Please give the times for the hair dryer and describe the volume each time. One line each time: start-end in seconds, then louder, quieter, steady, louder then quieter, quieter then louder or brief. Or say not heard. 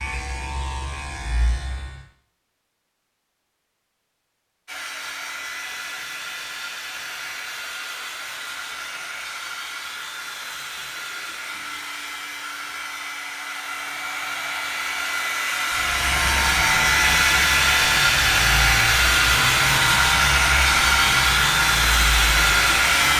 4.7-23.1 louder.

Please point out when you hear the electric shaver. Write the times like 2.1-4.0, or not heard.
0.0-2.0, 15.7-23.1.